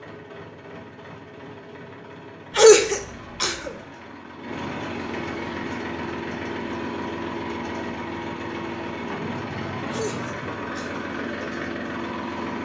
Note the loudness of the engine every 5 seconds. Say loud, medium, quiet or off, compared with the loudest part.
medium, loud, loud.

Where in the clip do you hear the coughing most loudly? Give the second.
3 s.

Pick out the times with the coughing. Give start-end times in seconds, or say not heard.
2.5-3.7, 9.9-11.1.